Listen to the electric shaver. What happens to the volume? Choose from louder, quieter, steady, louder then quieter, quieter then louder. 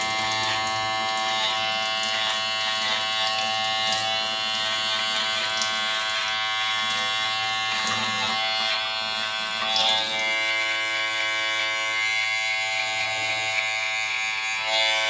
steady.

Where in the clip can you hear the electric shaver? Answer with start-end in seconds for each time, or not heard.
0.0-15.0.